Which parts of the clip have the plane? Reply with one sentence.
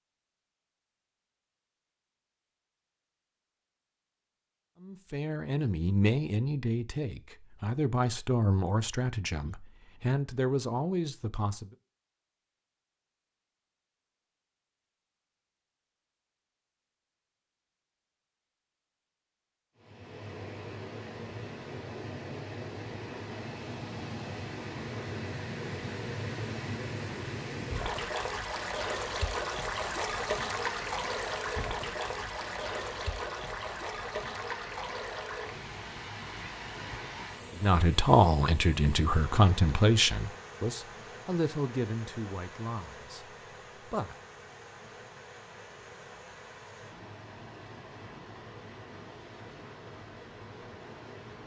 The plane can't be heard in this clip.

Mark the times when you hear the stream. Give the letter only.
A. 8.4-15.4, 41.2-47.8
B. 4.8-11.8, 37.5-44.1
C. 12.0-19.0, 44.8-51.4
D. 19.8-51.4
D.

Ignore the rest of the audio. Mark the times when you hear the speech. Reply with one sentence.
You can hear the speech from 4.8 to 11.8 s and from 37.5 to 44.1 s.